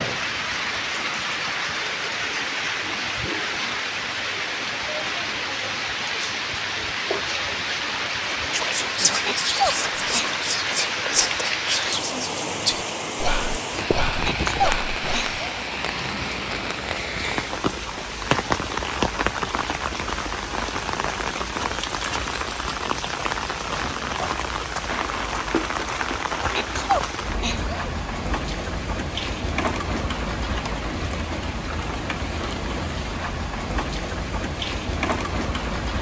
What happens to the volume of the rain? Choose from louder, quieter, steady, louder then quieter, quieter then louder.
steady.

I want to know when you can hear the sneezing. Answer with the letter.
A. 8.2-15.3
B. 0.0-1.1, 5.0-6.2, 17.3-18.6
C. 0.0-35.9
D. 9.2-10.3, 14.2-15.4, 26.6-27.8
D.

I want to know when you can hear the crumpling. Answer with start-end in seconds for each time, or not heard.
24.9-26.9.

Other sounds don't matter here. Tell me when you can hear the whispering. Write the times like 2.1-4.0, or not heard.
8.2-15.3.